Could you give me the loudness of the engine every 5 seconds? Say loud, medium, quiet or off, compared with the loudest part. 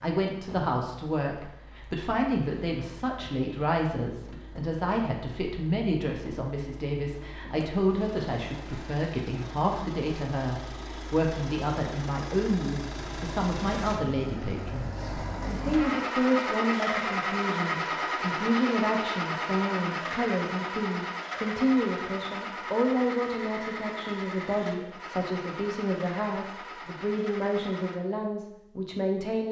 quiet, quiet, medium, loud, medium, medium.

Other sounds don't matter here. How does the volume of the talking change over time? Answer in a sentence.
The loudness of the talking stays about the same.